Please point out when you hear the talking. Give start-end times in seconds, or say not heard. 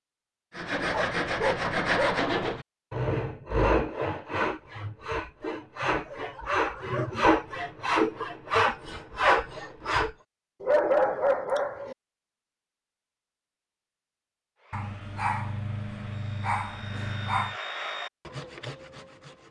not heard.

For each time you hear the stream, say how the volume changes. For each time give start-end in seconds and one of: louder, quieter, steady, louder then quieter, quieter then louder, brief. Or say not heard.
not heard.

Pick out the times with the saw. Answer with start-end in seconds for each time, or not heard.
0.6-10.1, 14.6-19.4.